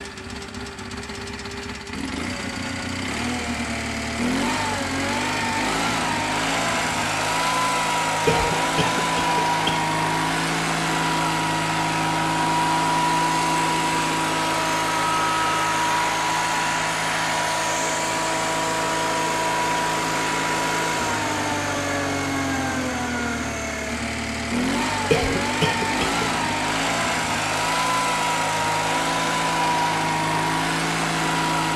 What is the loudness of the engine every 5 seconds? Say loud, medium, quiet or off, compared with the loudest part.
medium, loud, loud, loud, loud, loud, loud.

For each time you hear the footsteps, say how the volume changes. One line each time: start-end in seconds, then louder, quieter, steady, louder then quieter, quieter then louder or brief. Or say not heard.
not heard.